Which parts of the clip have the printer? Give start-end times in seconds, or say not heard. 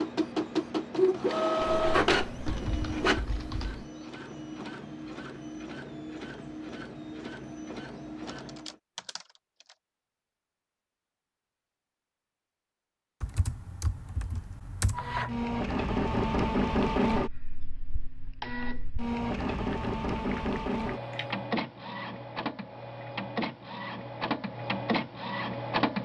0.0-8.8, 14.9-26.0.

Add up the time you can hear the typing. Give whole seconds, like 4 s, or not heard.
7 s.